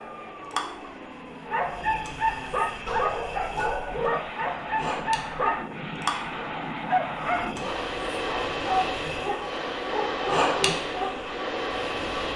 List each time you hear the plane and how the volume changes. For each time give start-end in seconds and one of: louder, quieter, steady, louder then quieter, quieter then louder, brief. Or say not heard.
0.0-12.3 louder.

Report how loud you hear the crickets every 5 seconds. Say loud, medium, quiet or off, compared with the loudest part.
medium, medium, loud.